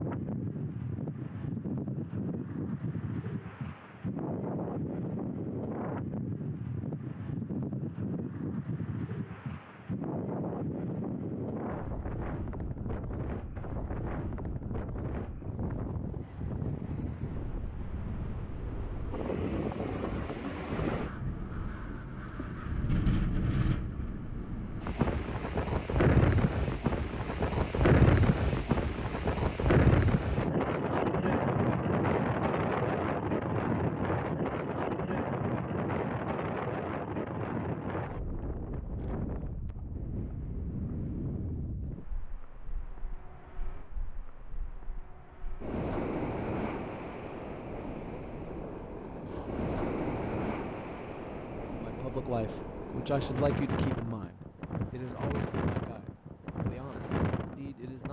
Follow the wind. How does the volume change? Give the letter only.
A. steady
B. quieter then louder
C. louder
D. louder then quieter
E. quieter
D.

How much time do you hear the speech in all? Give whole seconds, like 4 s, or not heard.
6 s.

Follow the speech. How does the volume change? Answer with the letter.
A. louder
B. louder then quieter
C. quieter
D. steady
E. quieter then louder
C.